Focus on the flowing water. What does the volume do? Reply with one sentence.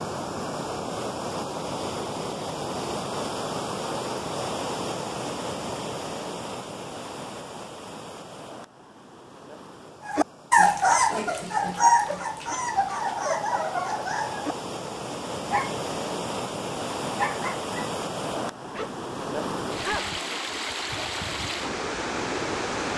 The loudness of the flowing water goes down, then up.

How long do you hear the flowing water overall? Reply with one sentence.
The flowing water can be heard for 23 seconds in total.